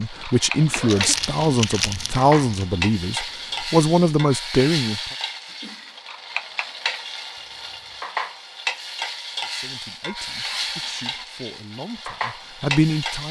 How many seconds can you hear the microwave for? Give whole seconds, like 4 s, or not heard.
not heard.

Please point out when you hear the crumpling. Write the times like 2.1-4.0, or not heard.
0.8-2.6, 7.3-8.1.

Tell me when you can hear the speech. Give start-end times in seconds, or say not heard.
0.0-5.0, 9.4-13.2.